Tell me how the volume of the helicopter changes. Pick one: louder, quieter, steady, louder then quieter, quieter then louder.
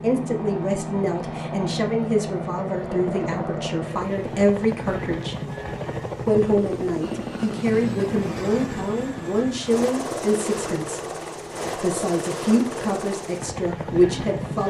steady.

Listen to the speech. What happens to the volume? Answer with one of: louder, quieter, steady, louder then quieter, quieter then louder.
steady.